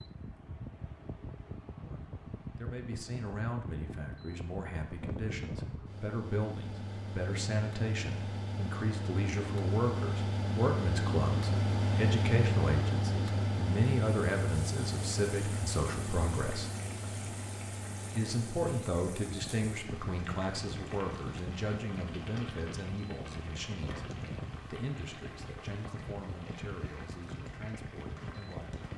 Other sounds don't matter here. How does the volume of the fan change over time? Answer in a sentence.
The volume of the fan goes up, then down.